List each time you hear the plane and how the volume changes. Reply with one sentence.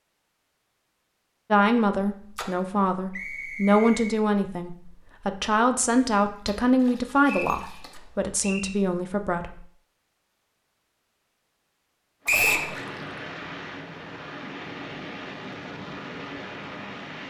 The plane can be heard from 12.2 to 17.2 s, at a steady volume.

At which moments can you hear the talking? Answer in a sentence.
The talking can be heard from 1.5 to 9.7 s.